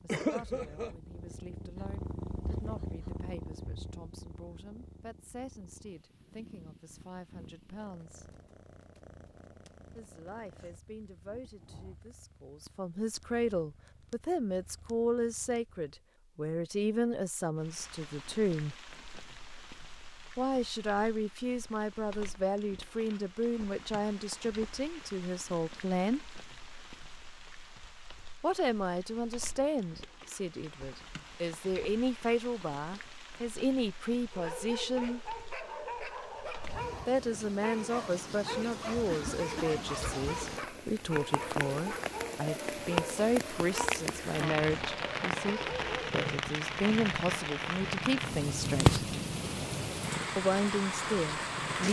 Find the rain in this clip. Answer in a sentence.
You can hear the rain from 17.6 to 51.8 s.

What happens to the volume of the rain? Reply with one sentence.
The loudness of the rain goes up.